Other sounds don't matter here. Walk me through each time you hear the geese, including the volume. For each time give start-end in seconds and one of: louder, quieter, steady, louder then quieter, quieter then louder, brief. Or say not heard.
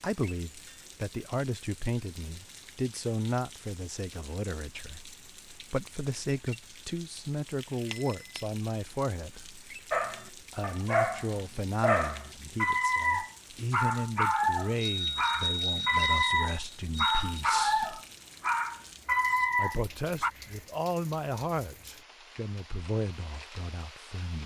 not heard.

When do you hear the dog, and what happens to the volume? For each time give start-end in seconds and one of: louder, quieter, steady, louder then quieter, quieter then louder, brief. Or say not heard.
9.9-20.3 steady.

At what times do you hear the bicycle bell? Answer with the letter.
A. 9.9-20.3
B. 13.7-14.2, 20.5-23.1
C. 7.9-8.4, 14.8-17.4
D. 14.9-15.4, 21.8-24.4
C.